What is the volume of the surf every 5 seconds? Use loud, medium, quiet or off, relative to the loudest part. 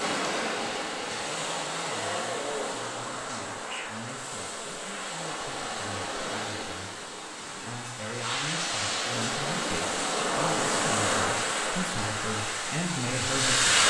medium, medium, loud.